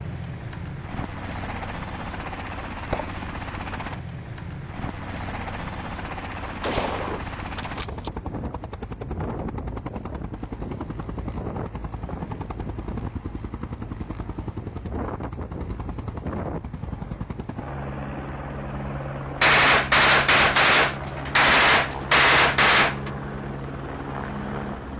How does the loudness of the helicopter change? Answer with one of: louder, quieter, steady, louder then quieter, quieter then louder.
steady.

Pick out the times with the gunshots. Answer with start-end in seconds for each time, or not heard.
6.4-8.1, 19.4-23.1.